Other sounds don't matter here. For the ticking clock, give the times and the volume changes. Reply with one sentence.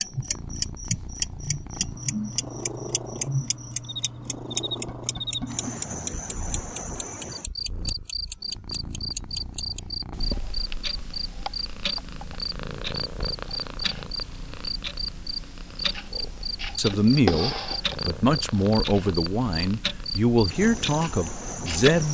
You can hear the ticking clock from 0.0 to 22.0 s, getting quieter.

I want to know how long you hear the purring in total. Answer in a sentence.
The purring can be heard for 22 seconds in total.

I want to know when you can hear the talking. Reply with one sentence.
You can hear the talking from 16.1 to 22.0 s.